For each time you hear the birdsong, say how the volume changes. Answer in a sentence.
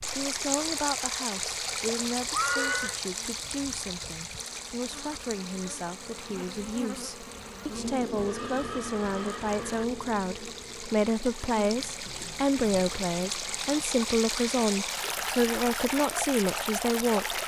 You can't hear the birdsong here.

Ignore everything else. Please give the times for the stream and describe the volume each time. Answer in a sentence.
You can hear the stream from 0.0 to 17.4 s, getting quieter then louder.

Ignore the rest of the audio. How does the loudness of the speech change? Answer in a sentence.
The loudness of the speech goes up.